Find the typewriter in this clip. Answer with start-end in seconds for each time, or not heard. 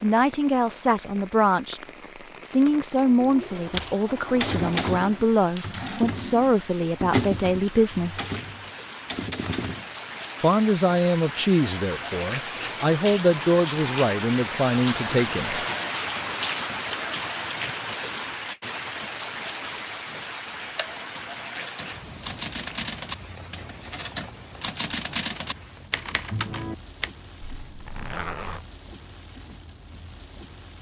3.7-9.9, 20.8-27.1.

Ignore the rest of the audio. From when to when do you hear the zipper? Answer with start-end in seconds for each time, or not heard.
27.4-28.6.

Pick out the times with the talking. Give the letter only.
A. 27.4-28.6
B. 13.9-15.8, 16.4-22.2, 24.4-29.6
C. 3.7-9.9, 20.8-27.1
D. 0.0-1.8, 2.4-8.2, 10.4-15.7
D.